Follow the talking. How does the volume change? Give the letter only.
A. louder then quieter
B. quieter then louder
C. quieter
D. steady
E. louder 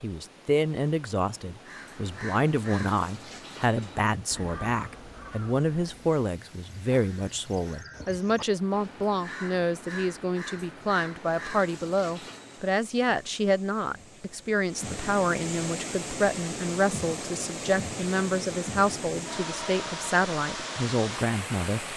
D.